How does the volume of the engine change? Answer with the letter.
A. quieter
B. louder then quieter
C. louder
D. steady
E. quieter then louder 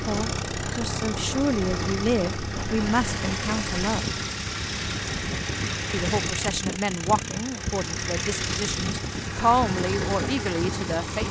D.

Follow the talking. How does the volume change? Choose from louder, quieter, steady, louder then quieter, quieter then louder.
steady.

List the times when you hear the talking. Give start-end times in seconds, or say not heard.
0.1-4.1, 5.9-11.2.